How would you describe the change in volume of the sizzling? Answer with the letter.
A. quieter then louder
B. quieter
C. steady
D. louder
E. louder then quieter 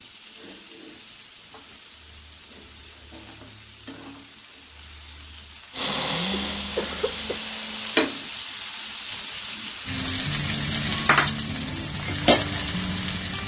D.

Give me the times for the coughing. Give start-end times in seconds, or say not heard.
6.3-7.4.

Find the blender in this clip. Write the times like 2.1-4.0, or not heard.
5.7-8.0.